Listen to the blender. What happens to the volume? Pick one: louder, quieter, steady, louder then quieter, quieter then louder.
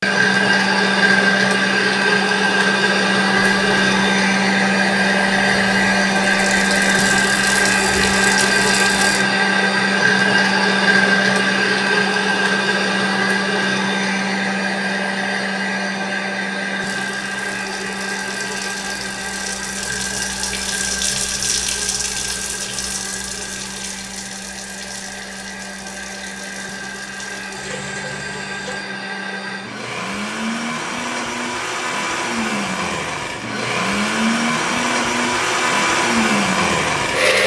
quieter then louder.